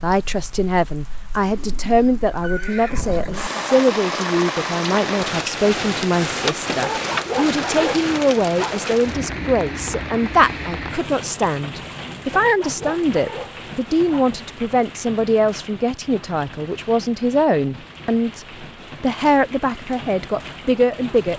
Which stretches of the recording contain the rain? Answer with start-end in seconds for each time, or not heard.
0.0-21.3.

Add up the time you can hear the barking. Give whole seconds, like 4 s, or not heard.
4 s.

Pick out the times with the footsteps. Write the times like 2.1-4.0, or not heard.
not heard.